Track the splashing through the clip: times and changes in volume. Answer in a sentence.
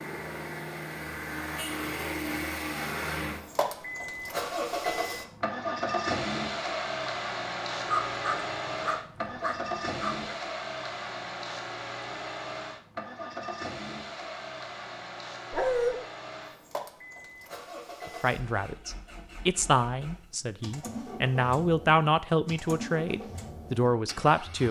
You can't hear the splashing here.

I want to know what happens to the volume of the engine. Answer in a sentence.
The volume of the engine goes down.